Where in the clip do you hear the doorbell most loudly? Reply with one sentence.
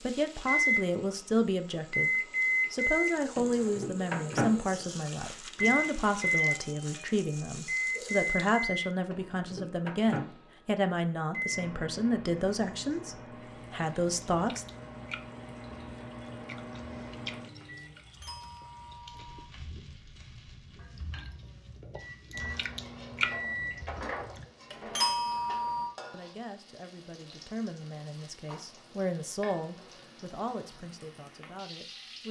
The loudest moment of the doorbell is at 25 seconds.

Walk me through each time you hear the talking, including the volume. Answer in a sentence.
The talking can be heard from 0.0 to 14.7 s, at a steady volume; and from 26.1 to 32.2 s, getting louder then quieter.